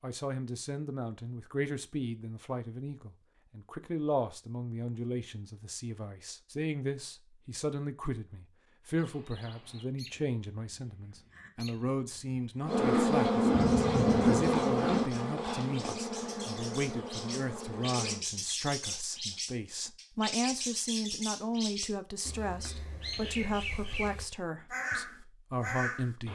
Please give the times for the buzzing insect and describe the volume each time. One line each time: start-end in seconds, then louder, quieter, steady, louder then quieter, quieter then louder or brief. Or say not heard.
12.7-18.2 quieter.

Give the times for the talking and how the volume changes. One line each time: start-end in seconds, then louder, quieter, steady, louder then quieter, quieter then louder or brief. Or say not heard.
0.0-26.3 steady.